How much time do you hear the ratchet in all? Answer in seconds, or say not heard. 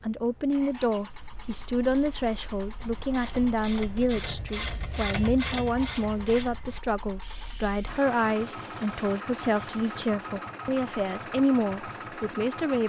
9 s.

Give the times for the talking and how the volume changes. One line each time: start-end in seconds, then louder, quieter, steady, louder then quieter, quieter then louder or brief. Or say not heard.
0.0-12.8 steady.